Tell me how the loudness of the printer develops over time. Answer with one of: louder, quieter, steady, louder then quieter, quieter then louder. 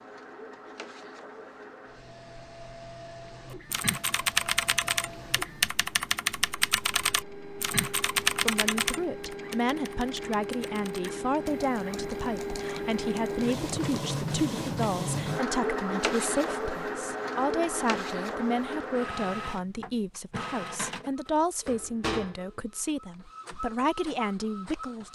louder then quieter.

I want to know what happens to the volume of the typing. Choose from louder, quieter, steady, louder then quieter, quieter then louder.
quieter.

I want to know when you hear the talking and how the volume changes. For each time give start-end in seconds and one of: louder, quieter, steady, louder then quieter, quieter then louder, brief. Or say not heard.
8.4-25.0 steady.